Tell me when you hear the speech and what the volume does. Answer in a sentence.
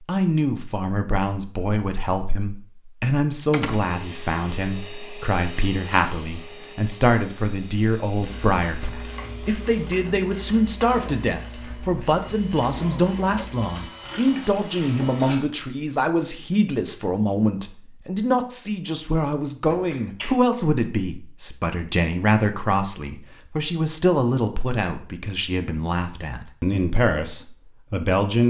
You can hear the speech from 0.0 to 28.4 s, at a steady volume.